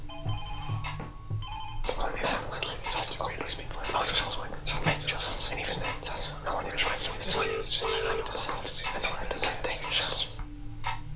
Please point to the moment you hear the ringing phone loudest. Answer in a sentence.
The volume of the ringing phone peaks at 8 seconds.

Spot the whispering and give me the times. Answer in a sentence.
You can hear the whispering from 1.8 to 10.4 s.